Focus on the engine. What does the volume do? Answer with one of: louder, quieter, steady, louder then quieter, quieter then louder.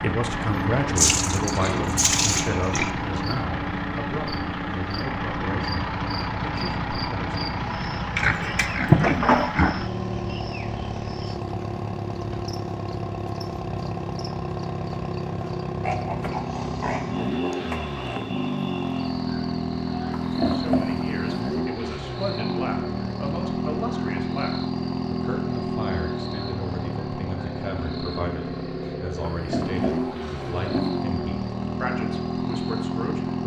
steady.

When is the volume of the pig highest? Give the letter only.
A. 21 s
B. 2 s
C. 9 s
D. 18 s
C.